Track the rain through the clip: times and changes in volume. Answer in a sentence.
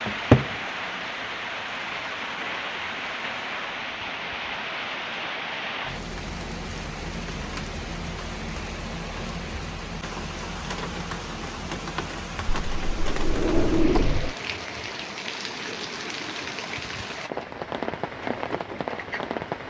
You can hear the rain from 0.0 to 19.6 s, at a steady volume.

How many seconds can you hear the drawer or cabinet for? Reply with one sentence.
The drawer or cabinet can be heard for 2 seconds in total.